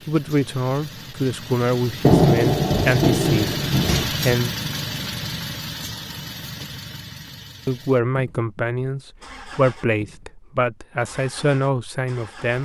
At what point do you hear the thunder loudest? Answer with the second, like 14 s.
2 s.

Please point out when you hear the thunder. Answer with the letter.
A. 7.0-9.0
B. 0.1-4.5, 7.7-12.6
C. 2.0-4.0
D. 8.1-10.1
C.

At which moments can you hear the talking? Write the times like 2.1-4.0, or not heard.
0.1-4.5, 7.7-12.6.